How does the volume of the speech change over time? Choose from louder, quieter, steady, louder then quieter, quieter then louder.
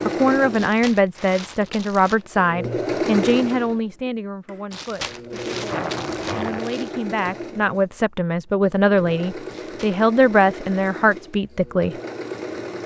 quieter then louder.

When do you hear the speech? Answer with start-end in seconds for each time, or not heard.
0.1-11.9.